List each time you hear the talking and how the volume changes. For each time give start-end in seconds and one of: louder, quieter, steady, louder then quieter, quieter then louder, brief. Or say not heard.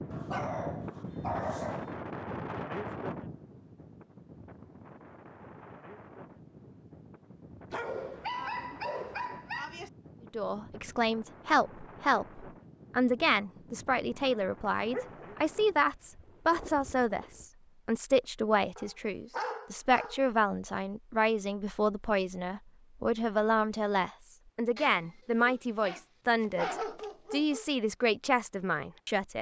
10.3-29.3 steady.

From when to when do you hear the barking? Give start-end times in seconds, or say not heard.
0.1-1.9, 7.7-9.9, 14.9-15.3, 18.8-20.2, 24.8-27.6.